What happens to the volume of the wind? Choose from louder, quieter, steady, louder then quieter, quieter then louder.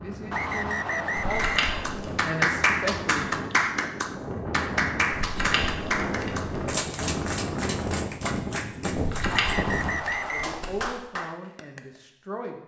louder.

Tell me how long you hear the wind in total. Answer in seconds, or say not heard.
10 s.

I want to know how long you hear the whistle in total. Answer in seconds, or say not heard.
3 s.